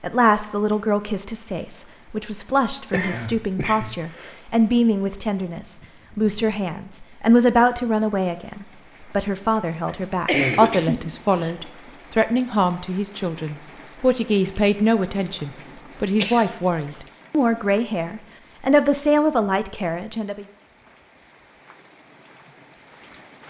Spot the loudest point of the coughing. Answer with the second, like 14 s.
10 s.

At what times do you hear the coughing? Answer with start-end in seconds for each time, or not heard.
2.5-4.3, 9.8-11.5, 16.2-16.9.